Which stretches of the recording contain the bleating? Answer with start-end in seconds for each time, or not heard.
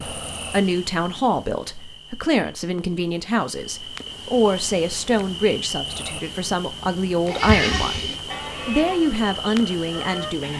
7.2-10.5.